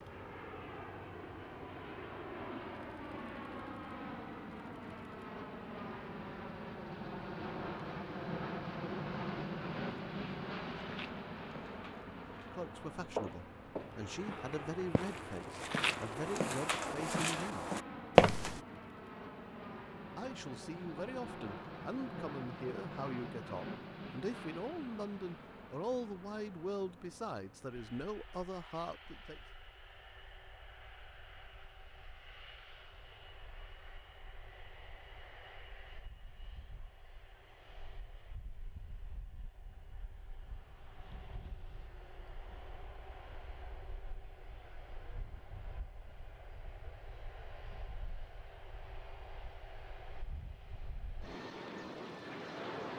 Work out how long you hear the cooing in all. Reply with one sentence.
You can't hear the cooing here.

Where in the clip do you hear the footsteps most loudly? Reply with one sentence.
The volume of the footsteps peaks at 18 seconds.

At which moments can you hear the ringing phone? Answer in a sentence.
You can't hear the ringing phone here.